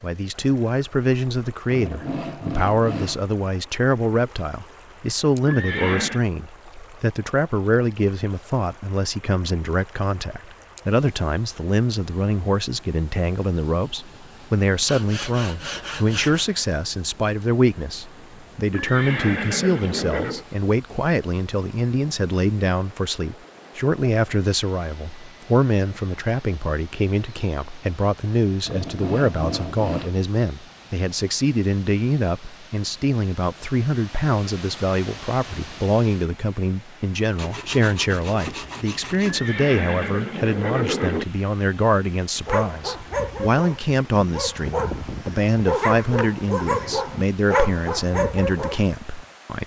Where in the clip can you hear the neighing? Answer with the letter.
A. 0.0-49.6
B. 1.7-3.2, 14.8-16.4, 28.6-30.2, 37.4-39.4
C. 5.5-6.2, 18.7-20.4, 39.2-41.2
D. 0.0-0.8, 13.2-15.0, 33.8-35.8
C.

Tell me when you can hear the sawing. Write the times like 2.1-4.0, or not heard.
1.7-3.2, 14.8-16.4, 28.6-30.2, 37.4-39.4.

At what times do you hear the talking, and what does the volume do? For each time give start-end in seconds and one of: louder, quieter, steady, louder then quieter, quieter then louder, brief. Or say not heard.
0.0-49.6 steady.